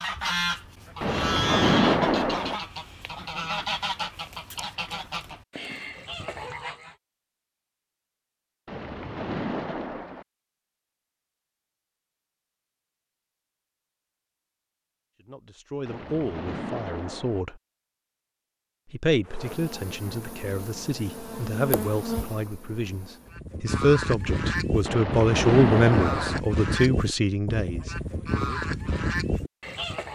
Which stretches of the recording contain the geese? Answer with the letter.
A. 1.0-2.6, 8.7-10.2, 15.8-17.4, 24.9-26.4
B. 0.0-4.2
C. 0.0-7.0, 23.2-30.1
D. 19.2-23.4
C.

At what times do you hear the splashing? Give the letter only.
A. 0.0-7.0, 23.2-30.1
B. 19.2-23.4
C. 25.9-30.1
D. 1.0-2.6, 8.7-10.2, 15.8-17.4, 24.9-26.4
D.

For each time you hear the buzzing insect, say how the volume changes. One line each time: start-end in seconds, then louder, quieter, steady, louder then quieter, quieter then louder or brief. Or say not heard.
19.2-23.4 louder then quieter.